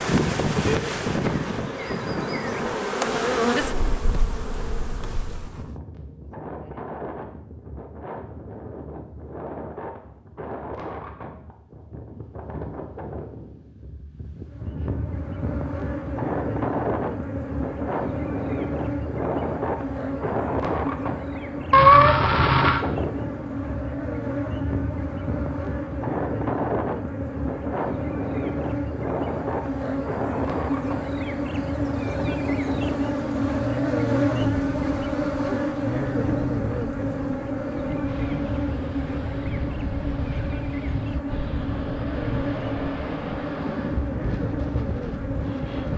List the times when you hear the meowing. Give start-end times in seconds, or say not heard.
21.7-22.8.